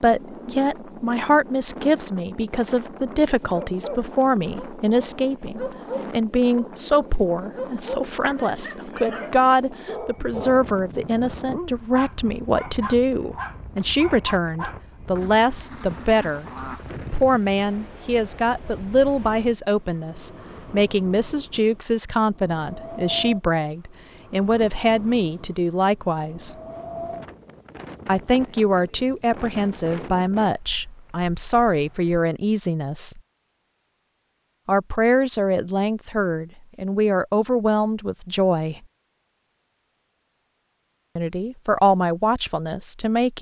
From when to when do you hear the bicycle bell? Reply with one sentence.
You can't hear the bicycle bell here.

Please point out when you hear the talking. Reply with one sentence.
The talking can be heard from 0.0 to 16.4 s, from 17.1 to 26.6 s, from 28.1 to 33.2 s, from 34.6 to 38.8 s and from 41.1 to 43.3 s.